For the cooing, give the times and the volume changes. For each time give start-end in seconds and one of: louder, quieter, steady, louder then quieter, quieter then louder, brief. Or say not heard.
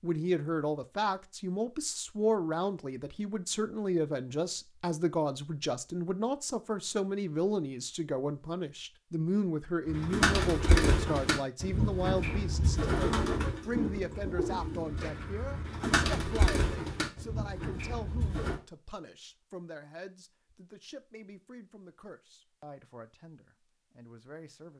9.8-18.6 quieter.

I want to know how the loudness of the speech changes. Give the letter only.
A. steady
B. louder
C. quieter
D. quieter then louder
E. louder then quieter
C.